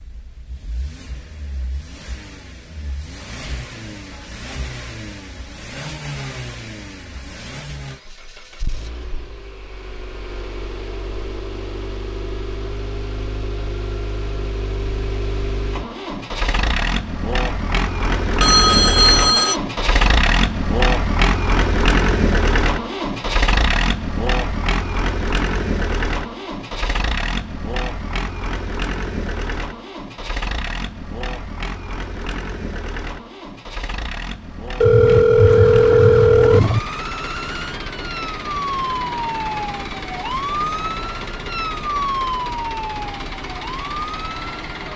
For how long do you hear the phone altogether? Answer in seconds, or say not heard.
3 s.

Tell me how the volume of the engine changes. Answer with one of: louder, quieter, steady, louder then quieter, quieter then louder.
louder then quieter.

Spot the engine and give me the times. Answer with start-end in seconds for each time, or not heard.
0.0-44.9.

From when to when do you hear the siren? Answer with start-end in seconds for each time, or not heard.
35.5-44.8.